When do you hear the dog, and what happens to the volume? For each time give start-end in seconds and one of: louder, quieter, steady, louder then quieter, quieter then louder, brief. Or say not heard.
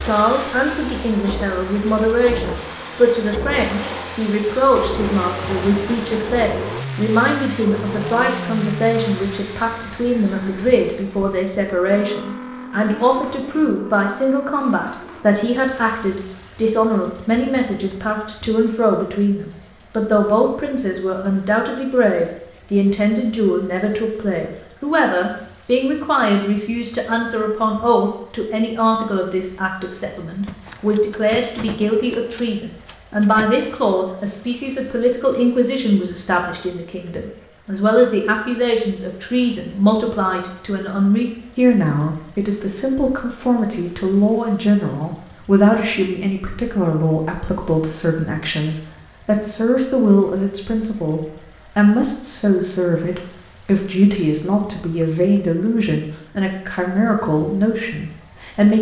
not heard.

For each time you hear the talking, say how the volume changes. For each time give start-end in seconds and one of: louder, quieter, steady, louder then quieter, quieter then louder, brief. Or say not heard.
0.0-58.7 steady.